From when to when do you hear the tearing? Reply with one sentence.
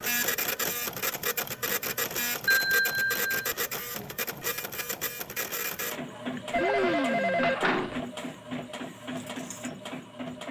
The tearing can't be heard in this clip.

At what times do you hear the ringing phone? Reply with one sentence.
The ringing phone can be heard from 2.5 to 3.5 s and from 6.5 to 8.0 s.